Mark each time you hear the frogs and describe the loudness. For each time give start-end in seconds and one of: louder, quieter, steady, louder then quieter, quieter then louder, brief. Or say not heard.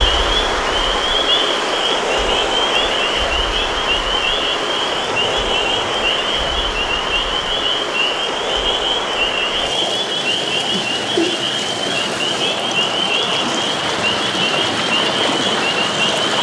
0.0-16.2 steady.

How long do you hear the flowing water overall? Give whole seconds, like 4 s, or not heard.
16 s.